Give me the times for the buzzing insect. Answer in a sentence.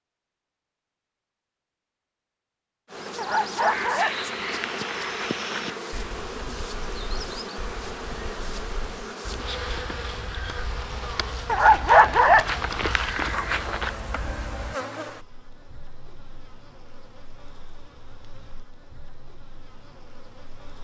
The buzzing insect can be heard from 2.9 to 20.7 s.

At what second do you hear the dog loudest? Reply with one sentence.
The volume of the dog peaks at 12 seconds.